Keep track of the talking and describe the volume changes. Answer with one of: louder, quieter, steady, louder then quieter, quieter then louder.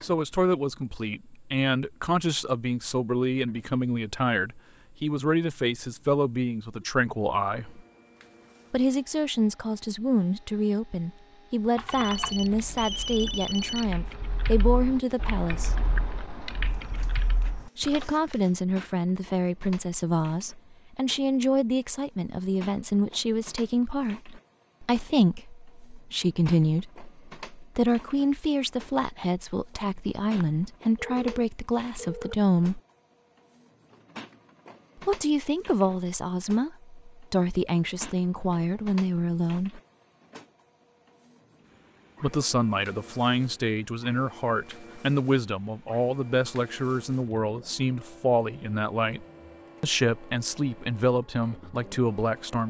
steady.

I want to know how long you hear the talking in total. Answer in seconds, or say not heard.
45 s.